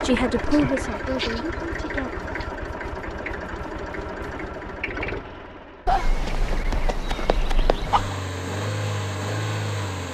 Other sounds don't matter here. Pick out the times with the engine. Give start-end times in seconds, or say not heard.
0.0-10.0.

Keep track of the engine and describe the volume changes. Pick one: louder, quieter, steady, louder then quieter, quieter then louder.
quieter then louder.